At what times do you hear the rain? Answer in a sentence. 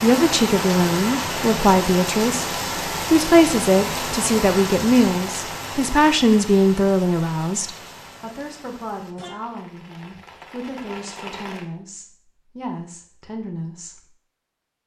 The rain can be heard from 0.0 to 11.7 s.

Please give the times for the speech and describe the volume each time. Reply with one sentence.
The speech can be heard from 0.0 to 14.1 s, getting quieter.